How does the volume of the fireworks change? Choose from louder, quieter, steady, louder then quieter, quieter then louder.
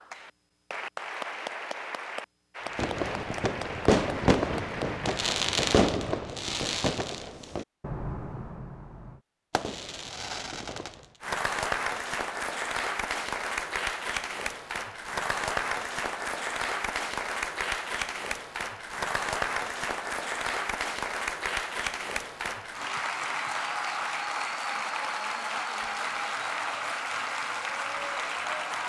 quieter.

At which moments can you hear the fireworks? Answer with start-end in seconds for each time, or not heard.
2.8-11.1.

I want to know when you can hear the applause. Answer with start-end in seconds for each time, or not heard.
0.0-5.4, 11.2-28.8.